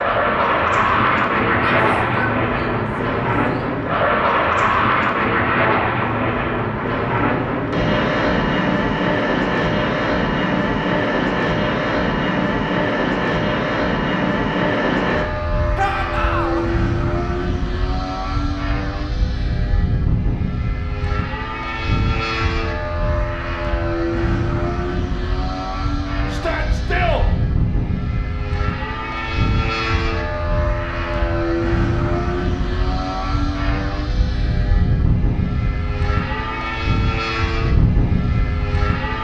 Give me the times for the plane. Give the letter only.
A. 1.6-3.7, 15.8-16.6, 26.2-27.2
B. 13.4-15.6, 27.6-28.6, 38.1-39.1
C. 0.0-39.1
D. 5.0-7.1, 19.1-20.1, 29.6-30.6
C.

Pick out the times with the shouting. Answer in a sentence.
You can hear the shouting from 1.6 to 3.7 s, from 15.8 to 16.6 s and from 26.2 to 27.2 s.